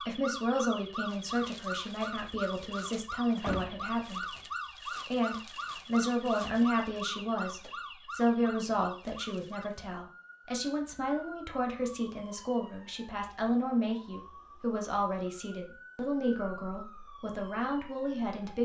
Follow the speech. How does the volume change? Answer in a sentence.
The volume of the speech stays about the same.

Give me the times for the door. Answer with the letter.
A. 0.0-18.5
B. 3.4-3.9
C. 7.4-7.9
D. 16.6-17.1
B.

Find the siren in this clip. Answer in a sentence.
You can hear the siren from 0.0 to 18.5 s.